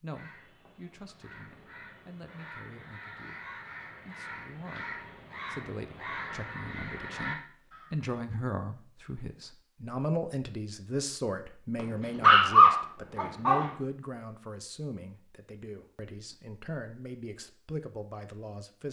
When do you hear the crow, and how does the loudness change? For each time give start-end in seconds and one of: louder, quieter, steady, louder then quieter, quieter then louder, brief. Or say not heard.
0.1-8.1 louder.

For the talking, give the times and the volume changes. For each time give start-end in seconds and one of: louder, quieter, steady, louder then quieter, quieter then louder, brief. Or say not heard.
0.0-18.8 louder then quieter.